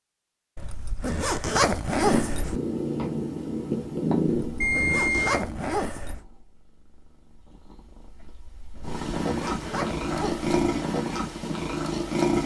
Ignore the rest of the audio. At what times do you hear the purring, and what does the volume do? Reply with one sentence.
You can hear the purring from 1.9 to 12.4 s, getting quieter then louder.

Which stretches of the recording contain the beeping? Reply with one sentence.
The beeping can be heard from 4.6 to 5.3 s.